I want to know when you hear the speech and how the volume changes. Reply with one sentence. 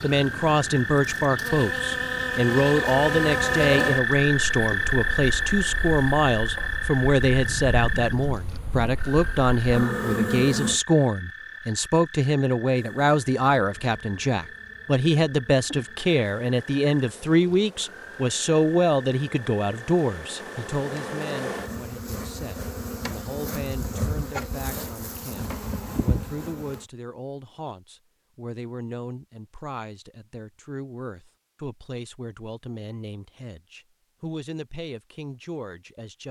The speech can be heard from 0.0 to 36.2 s, getting quieter.